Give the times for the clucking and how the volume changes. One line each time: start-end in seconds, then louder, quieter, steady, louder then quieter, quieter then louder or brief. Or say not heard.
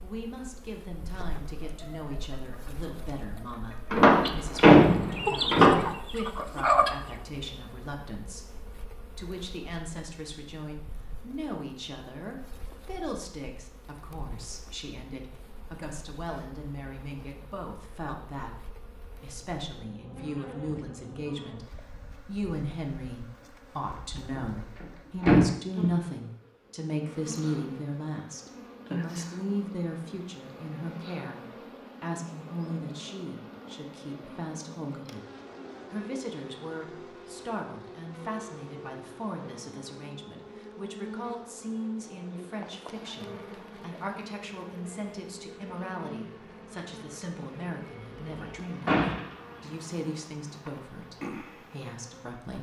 1.0-7.2 louder.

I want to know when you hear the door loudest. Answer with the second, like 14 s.
5 s.